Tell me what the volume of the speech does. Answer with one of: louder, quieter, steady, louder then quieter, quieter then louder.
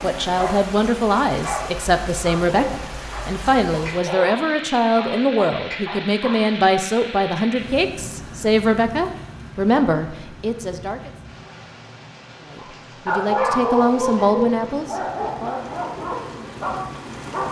steady.